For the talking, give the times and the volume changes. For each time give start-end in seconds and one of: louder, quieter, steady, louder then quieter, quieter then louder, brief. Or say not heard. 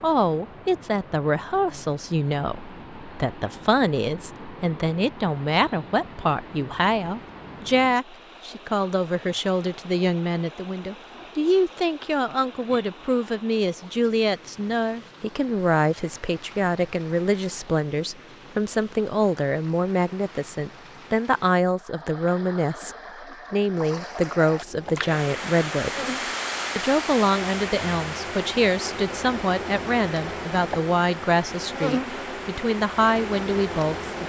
0.0-26.1 steady
26.8-34.2 steady.